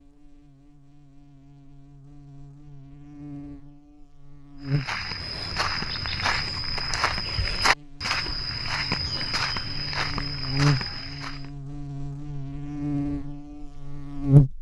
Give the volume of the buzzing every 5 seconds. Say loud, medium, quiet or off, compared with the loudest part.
quiet, quiet, loud.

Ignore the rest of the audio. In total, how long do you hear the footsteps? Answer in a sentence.
The footsteps can be heard for 7 seconds in total.